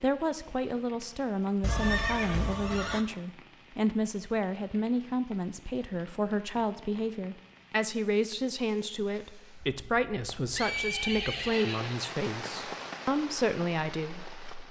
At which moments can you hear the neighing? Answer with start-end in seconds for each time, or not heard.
1.6-3.0, 10.5-12.2.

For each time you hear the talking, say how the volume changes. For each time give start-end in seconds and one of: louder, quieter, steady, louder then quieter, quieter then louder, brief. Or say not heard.
0.0-14.6 steady.